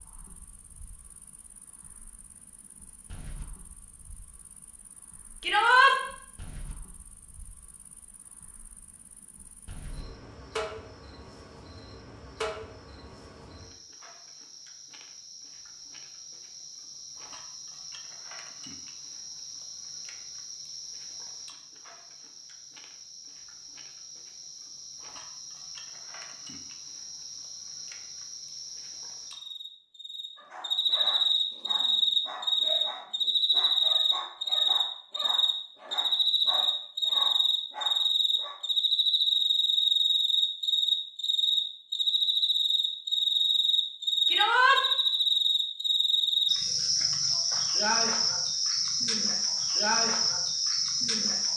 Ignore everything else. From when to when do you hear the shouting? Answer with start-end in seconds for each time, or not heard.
5.4-6.0, 44.2-44.8.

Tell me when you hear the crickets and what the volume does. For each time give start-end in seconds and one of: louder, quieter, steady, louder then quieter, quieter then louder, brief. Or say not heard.
0.0-51.5 louder.